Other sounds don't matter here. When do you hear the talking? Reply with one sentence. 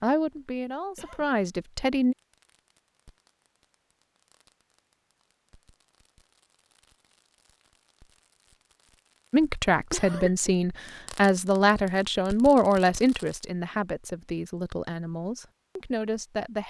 You can hear the talking from 0.0 to 2.1 s and from 9.3 to 16.6 s.